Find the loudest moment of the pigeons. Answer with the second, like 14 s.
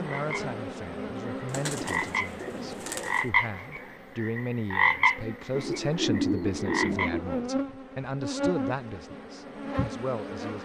6 s.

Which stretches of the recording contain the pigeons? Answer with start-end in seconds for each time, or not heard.
1.5-3.2, 5.5-7.5.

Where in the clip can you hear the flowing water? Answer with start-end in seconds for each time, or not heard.
not heard.